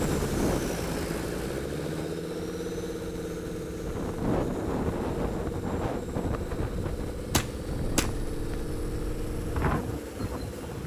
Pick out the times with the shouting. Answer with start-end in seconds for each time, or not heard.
not heard.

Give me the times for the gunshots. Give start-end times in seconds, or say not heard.
7.3-8.2.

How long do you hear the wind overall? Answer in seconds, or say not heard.
11 s.